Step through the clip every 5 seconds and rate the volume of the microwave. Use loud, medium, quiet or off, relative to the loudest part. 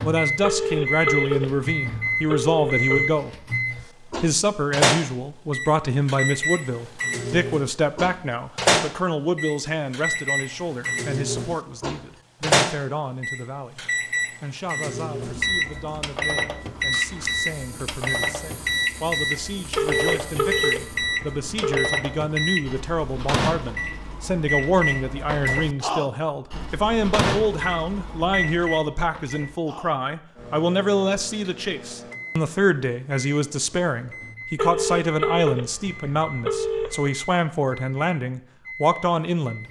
loud, loud, loud, loud, loud, medium, quiet, quiet.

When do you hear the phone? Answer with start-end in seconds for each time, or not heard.
0.4-3.1, 19.8-21.9, 34.5-37.1.